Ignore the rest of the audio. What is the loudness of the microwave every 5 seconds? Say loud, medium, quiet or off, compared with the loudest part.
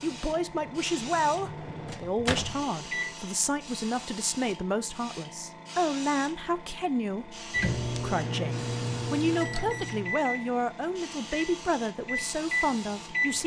medium, loud, loud.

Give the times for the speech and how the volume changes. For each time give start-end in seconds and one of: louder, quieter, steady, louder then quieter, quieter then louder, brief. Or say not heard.
0.0-13.4 steady.